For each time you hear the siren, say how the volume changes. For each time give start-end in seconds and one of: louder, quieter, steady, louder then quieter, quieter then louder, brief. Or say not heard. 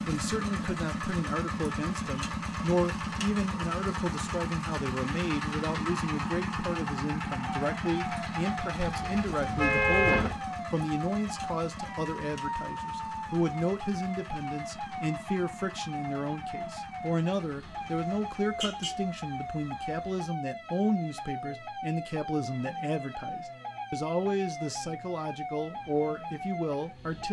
7.7-27.2 steady.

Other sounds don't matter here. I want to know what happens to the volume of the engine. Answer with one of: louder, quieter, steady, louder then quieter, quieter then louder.
quieter.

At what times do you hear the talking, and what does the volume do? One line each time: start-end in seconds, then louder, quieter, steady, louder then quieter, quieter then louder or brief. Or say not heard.
0.1-27.2 steady.